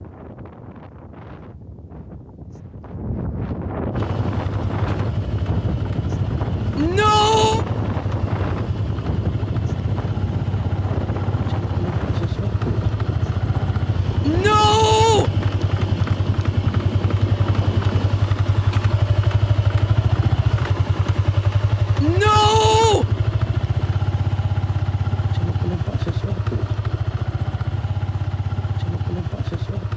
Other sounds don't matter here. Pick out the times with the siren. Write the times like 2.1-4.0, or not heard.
not heard.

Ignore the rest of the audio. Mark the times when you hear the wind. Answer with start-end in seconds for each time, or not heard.
0.0-18.1.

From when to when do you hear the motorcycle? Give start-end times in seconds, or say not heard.
3.9-29.9.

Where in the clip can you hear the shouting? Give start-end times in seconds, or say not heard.
6.8-7.7, 14.2-15.3, 22.0-23.1.